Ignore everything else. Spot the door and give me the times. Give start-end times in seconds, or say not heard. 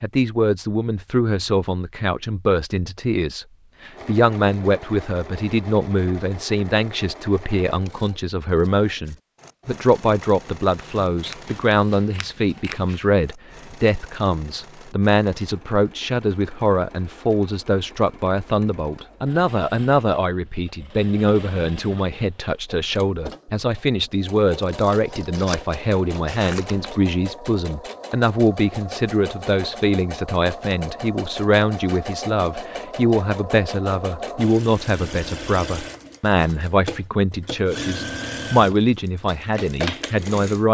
not heard.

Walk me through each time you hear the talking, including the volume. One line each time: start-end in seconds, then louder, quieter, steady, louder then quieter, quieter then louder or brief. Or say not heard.
0.0-40.6 steady.